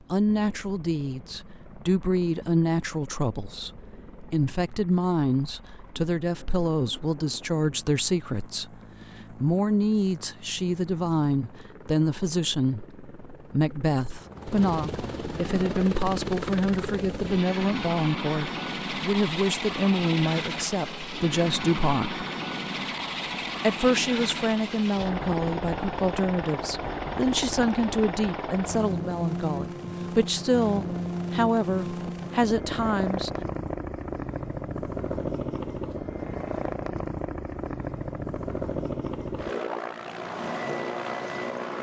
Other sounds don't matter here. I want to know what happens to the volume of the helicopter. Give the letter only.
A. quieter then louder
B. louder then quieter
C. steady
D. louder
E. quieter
D.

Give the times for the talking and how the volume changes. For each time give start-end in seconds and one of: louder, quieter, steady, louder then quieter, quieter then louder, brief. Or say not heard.
0.1-22.2 steady
23.6-33.3 steady.